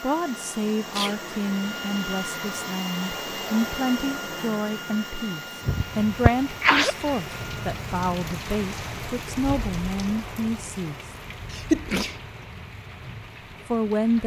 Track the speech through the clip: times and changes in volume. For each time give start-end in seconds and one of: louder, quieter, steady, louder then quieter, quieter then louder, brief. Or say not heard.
0.0-11.0 steady
13.7-14.2 brief.